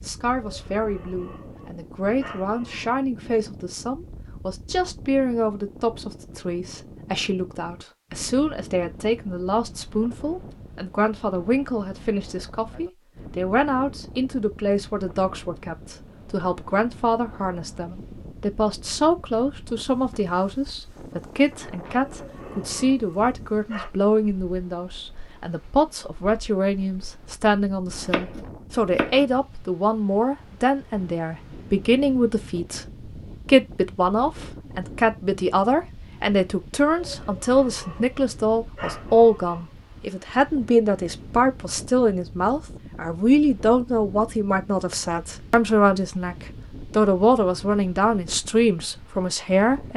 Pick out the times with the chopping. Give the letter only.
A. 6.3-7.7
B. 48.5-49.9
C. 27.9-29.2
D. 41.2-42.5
C.